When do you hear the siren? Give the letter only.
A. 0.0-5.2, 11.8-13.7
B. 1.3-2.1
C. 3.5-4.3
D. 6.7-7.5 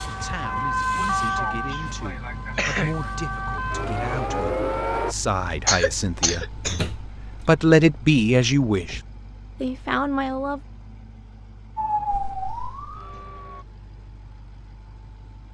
A.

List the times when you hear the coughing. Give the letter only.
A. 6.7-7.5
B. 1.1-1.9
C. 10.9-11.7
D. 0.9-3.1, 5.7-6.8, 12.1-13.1
D.